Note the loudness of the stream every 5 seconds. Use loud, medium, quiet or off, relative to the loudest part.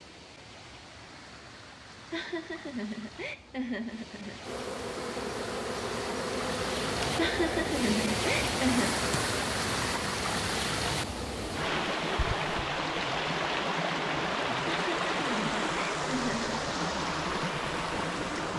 quiet, loud, loud, loud.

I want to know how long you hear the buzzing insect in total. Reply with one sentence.
The buzzing insect can be heard for 8 seconds in total.